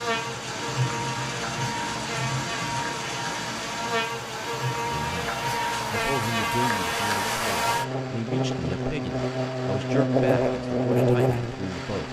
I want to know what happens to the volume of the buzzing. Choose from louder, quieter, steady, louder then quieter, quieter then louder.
louder.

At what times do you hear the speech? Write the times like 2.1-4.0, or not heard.
4.9-12.0.